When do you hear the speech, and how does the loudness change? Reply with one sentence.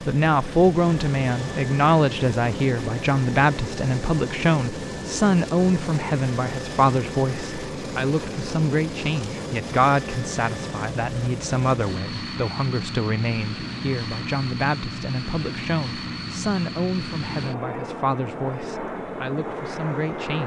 You can hear the speech from 0.1 to 20.4 s, getting quieter.